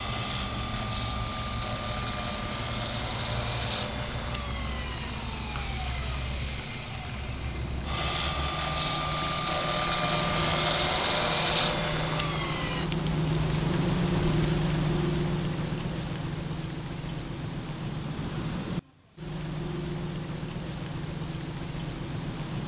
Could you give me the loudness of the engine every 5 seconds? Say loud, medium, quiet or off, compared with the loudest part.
medium, medium, loud, off, off.